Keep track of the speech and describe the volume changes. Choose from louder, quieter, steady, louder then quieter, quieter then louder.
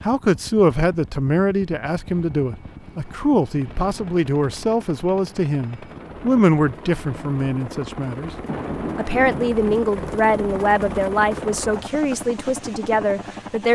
steady.